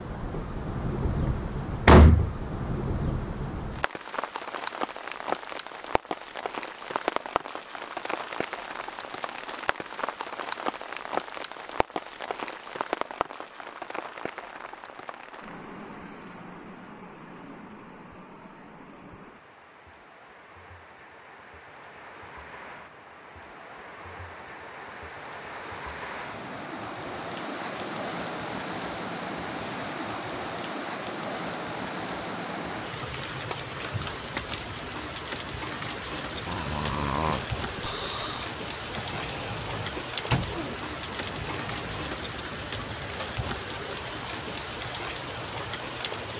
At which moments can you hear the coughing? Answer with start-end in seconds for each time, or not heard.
not heard.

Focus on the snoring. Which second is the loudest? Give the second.
37 s.